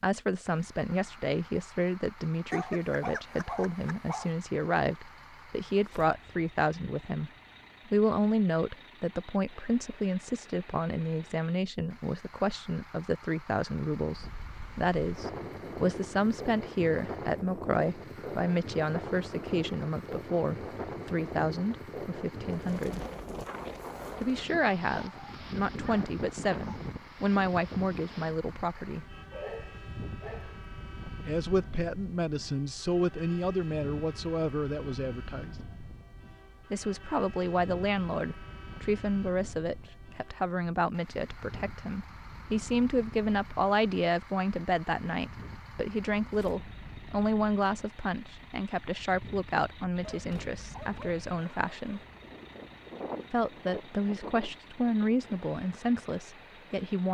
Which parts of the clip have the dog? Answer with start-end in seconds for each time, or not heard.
2.5-4.3, 24.9-26.8, 28.8-30.6, 50.0-52.0.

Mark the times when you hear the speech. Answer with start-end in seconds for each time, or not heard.
0.0-23.1, 24.1-29.1, 31.2-35.5, 36.7-52.0, 53.3-57.0.